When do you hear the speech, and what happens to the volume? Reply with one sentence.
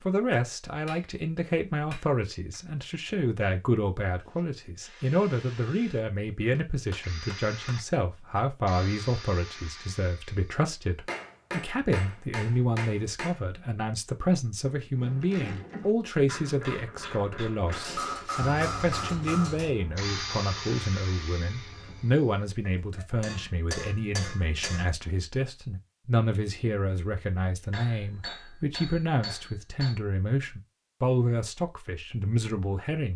The speech can be heard from 0.1 to 33.1 s, at a steady volume.